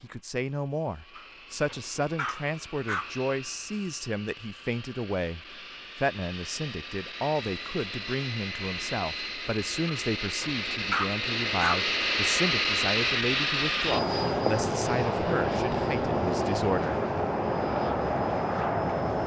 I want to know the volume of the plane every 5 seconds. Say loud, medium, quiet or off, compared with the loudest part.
quiet, medium, loud, loud.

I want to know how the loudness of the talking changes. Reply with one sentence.
The volume of the talking stays about the same.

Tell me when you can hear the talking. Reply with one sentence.
The talking can be heard from 0.0 to 17.0 s.